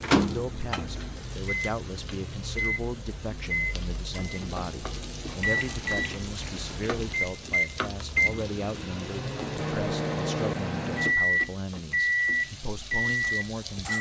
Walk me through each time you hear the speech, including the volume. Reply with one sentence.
The speech can be heard from 0.1 to 13.9 s, at a steady volume.